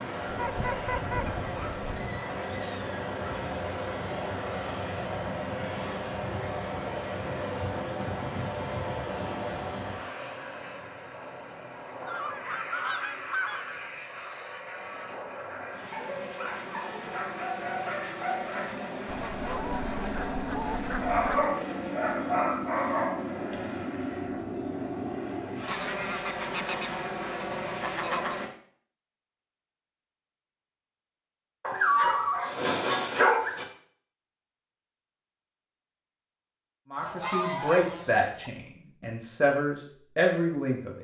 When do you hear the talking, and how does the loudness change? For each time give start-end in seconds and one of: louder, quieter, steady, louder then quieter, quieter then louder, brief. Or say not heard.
36.9-40.9 quieter then louder.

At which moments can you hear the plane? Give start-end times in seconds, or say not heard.
0.0-28.5.